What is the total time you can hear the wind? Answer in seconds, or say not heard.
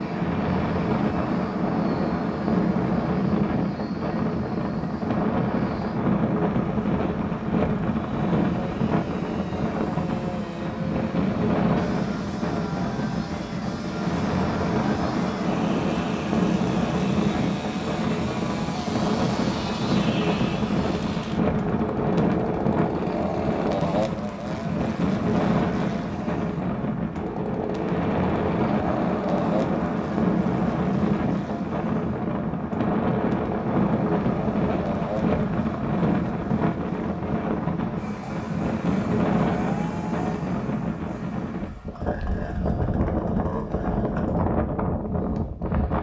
46 s.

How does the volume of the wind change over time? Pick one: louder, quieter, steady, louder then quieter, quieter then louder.
steady.